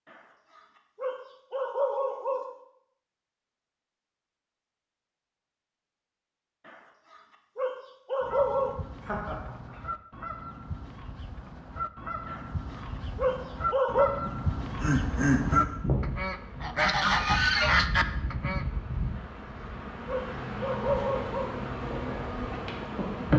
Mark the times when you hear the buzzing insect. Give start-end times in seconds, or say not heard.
15.2-23.3.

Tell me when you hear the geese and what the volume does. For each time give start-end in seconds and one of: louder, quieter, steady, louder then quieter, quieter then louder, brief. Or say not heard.
8.2-18.6 louder.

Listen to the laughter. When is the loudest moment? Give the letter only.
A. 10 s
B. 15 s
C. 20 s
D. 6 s
B.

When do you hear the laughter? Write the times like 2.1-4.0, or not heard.
9.0-9.8, 14.2-15.7.